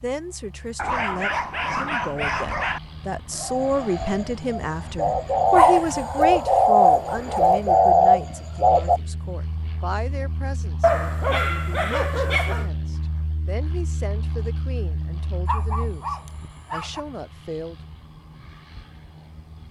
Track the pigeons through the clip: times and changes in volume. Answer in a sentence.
The pigeons can be heard from 3.4 to 9.0 s, getting louder.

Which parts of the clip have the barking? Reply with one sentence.
You can hear the barking from 0.8 to 2.8 s, from 5.5 to 7.5 s, from 10.8 to 12.7 s and from 15.4 to 17.0 s.